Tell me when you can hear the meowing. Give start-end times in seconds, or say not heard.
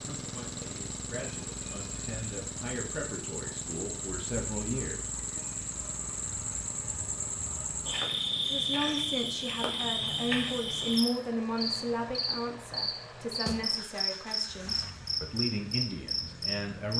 not heard.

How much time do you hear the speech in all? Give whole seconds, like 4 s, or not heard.
14 s.